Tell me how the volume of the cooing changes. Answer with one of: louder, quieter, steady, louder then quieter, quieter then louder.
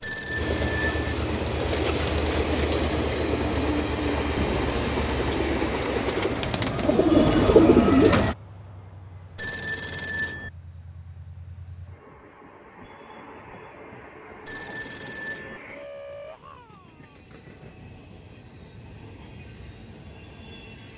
louder.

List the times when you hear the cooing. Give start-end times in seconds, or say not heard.
1.3-8.3.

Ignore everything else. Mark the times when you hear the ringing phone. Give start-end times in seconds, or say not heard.
0.0-1.1, 9.3-10.5, 14.4-15.6.